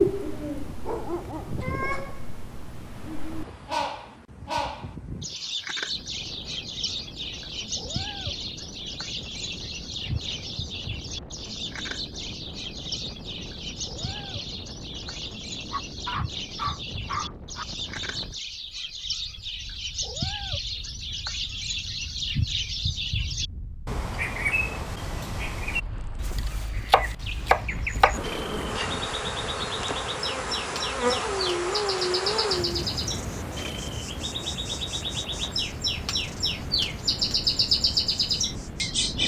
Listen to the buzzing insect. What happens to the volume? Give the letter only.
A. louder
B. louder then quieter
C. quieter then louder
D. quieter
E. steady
D.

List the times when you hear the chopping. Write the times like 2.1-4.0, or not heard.
26.4-28.1.